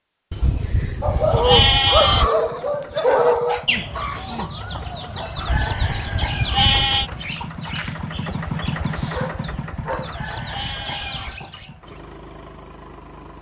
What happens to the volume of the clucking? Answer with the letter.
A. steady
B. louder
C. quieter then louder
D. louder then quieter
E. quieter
C.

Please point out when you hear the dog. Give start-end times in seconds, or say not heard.
1.0-3.6, 7.7-10.1.